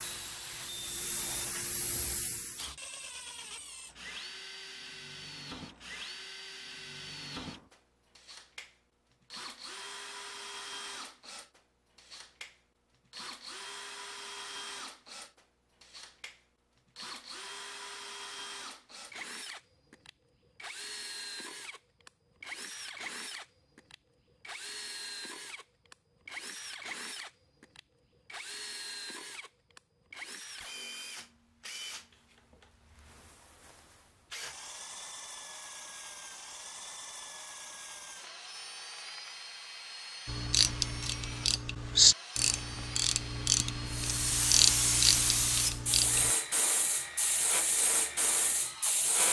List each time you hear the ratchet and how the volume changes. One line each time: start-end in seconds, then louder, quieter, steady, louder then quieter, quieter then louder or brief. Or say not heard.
40.2-46.3 louder then quieter.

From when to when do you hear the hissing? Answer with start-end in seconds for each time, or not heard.
0.0-2.8, 43.9-49.2.